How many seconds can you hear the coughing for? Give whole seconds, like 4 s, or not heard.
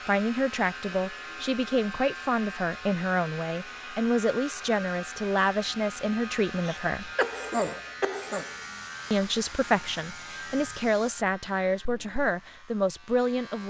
2 s.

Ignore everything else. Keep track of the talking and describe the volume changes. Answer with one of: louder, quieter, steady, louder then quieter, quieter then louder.
steady.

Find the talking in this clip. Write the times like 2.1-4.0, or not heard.
0.1-7.1, 9.1-13.6.